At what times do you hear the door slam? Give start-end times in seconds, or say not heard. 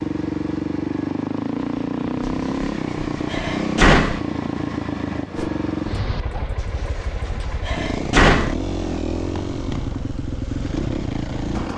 2.2-4.2, 6.5-8.6.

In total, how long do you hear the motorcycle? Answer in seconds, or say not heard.
12 s.